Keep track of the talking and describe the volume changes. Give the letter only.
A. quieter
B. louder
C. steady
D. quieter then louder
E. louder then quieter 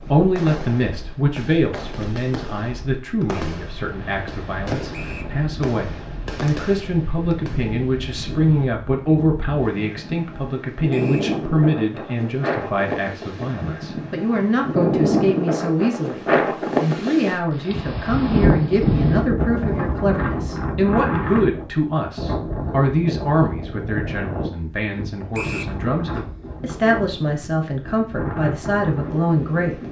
C.